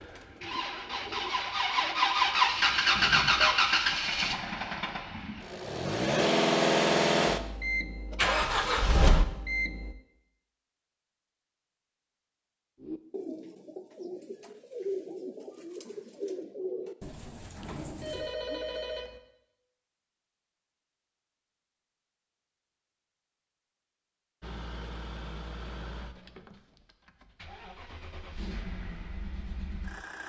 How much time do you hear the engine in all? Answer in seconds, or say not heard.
16 s.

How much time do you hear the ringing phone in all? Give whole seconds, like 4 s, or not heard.
2 s.